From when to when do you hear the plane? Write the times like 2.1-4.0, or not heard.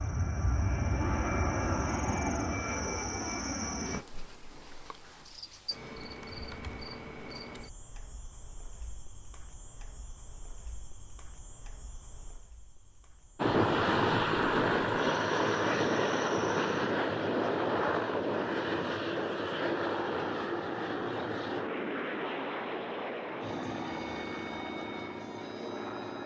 0.0-4.0, 13.3-26.2.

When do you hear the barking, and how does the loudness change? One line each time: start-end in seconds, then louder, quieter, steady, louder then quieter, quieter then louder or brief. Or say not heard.
not heard.